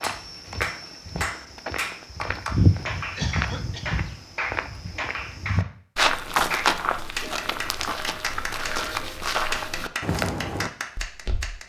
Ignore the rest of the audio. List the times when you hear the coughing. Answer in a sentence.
You can hear the coughing from 3.0 to 4.0 s.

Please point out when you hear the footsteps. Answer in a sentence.
You can hear the footsteps from 0.0 to 11.6 s.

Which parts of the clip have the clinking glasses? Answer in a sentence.
You can't hear the clinking glasses here.